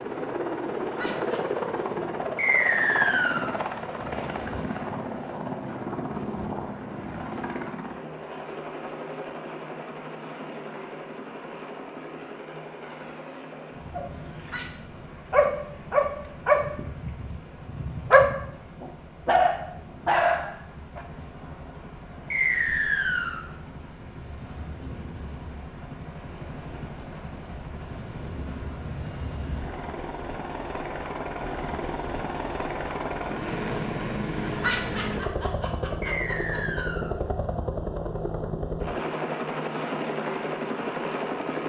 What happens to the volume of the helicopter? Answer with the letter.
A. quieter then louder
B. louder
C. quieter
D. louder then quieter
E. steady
A.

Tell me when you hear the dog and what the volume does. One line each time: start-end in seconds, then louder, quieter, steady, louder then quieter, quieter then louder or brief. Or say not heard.
13.9-21.1 quieter then louder.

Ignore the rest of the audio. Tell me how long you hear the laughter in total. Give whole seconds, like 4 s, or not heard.
4 s.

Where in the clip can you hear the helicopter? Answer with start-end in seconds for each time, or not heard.
0.0-41.6.